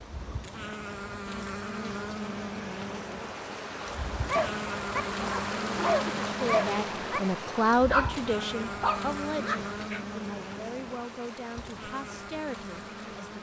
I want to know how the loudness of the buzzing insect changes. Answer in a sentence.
The loudness of the buzzing insect goes down.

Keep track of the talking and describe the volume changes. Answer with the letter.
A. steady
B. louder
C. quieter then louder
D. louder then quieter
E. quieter
E.